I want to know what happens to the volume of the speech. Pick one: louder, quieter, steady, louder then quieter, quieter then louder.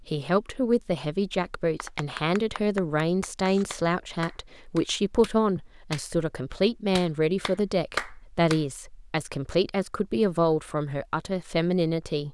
steady.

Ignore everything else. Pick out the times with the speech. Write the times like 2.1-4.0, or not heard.
0.0-12.2.